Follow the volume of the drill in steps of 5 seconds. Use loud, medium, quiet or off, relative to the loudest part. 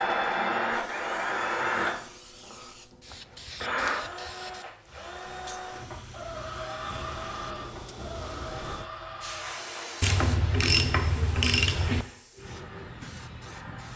loud, medium, quiet.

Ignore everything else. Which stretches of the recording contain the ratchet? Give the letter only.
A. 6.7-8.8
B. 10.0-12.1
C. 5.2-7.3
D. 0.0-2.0
B.